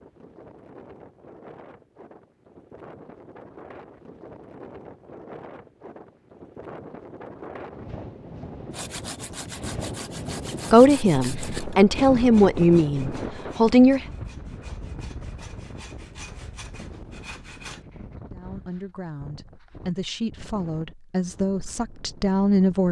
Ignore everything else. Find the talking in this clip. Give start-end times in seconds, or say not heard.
10.7-14.1, 18.3-22.8.